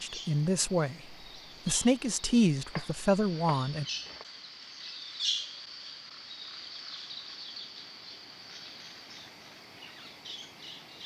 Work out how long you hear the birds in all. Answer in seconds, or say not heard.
11 s.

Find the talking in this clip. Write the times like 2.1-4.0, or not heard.
0.0-3.9.